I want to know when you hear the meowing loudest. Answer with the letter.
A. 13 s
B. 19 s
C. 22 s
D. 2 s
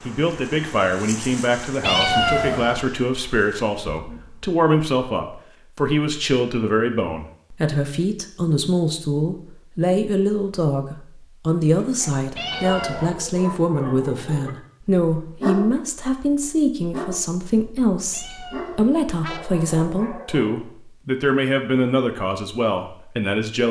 D.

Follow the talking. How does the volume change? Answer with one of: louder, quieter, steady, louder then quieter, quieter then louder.
steady.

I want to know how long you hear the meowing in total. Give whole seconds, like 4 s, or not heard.
3 s.